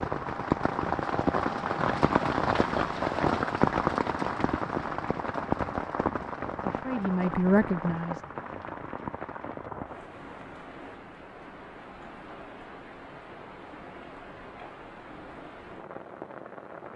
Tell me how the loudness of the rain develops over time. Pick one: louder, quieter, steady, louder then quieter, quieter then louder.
quieter.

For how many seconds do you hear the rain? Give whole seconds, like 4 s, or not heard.
17 s.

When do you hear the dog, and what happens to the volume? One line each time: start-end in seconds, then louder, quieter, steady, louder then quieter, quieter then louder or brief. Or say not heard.
not heard.